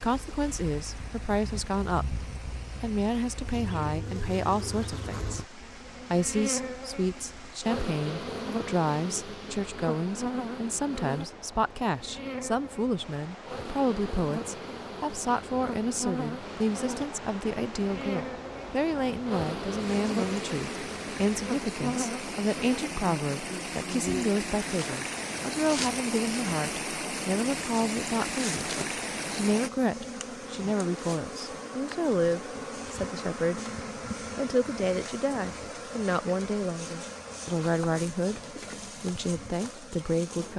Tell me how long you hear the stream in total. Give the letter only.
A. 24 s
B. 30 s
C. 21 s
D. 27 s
B.